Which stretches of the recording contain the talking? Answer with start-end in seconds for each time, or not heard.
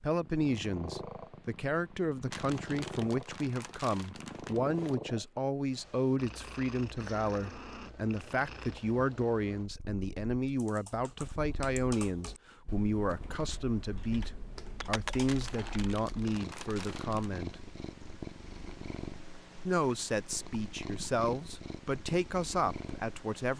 0.0-17.6, 19.6-23.5.